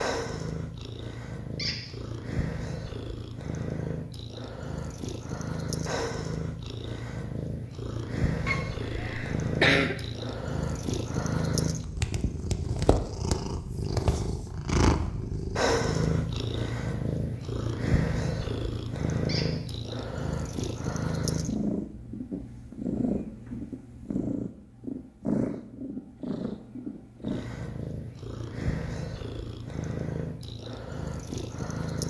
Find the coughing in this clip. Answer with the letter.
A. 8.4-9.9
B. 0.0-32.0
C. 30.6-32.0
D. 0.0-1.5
A.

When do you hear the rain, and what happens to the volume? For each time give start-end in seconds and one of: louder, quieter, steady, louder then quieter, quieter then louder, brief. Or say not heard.
not heard.